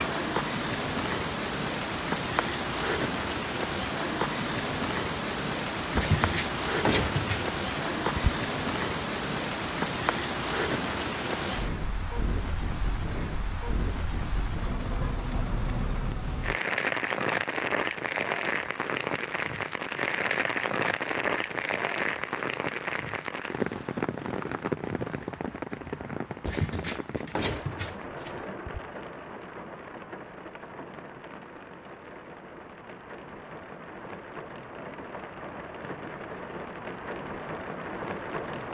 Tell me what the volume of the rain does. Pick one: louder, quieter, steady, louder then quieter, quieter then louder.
quieter.